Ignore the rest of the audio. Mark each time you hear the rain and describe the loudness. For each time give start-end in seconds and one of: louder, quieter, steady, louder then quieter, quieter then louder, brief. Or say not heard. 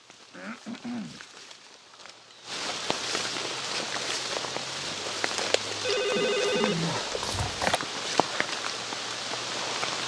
0.0-10.0 louder.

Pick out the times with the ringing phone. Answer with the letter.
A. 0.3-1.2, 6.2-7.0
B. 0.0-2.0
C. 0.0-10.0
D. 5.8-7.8
D.